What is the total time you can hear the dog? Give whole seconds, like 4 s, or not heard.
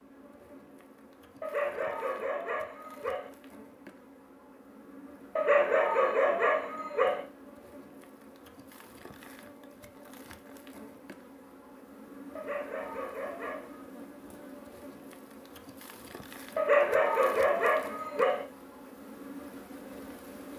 7 s.